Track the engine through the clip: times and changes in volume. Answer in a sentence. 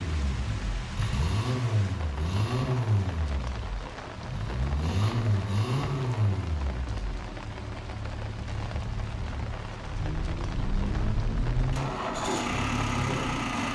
The engine can be heard from 0.0 to 13.7 s, getting quieter then louder.